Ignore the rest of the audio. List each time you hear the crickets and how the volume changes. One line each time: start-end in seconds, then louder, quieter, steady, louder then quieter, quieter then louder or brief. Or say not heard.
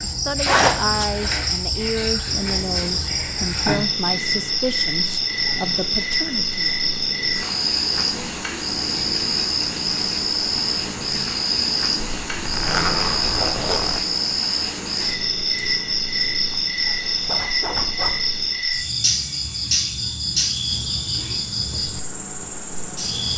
0.0-23.3 steady.